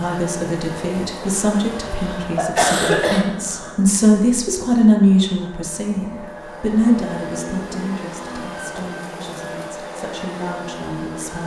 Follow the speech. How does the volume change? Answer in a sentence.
The loudness of the speech goes up, then down.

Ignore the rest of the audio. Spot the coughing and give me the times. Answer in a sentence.
You can hear the coughing from 1.9 to 3.7 s.